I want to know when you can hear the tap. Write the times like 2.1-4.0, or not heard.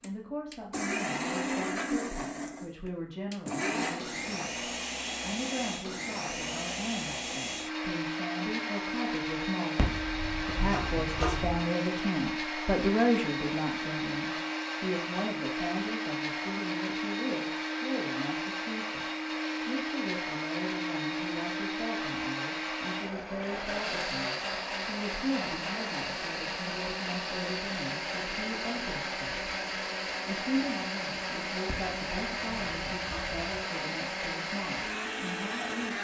not heard.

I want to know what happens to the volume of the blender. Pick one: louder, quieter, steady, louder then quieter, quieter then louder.
steady.